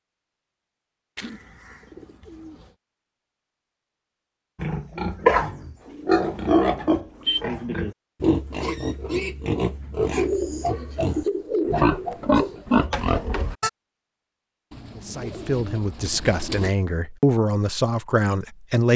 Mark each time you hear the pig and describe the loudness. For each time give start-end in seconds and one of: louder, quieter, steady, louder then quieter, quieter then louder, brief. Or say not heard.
4.6-13.7 quieter then louder.